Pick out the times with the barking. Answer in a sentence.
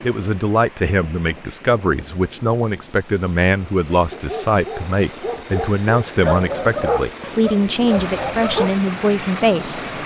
The barking can be heard from 4.0 to 8.7 s.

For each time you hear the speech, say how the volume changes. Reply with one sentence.
The speech can be heard from 0.0 to 9.8 s, at a steady volume.